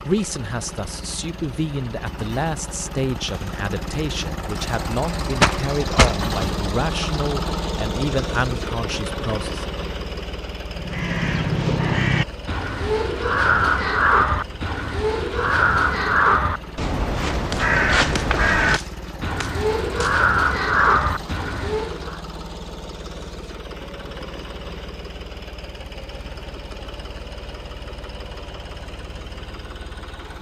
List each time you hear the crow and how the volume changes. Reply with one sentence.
You can hear the crow from 10.7 to 22.2 s, at a steady volume.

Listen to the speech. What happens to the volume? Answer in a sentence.
The loudness of the speech stays about the same.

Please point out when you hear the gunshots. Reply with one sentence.
You can hear the gunshots from 5.4 to 6.2 s and from 17.5 to 20.1 s.